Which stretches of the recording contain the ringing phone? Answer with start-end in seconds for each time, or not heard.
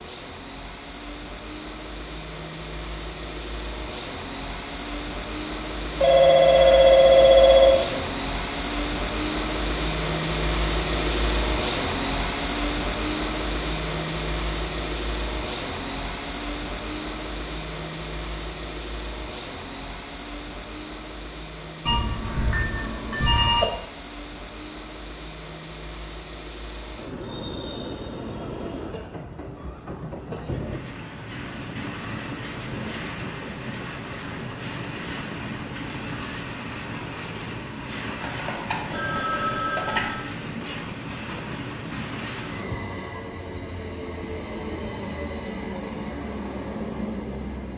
6.0-8.0, 21.9-23.6, 38.2-40.2.